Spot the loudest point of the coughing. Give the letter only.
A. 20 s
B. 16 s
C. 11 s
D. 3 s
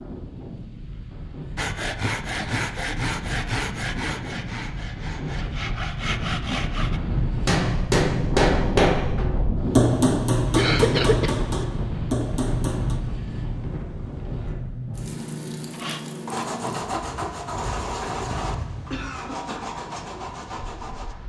C.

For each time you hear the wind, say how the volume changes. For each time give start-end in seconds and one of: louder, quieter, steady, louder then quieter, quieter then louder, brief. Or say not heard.
0.0-21.2 louder then quieter.